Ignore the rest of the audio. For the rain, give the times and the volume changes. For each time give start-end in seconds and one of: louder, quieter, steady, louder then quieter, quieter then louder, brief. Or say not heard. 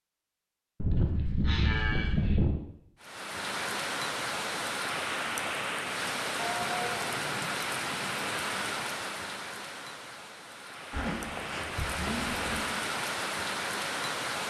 3.0-14.4 quieter then louder.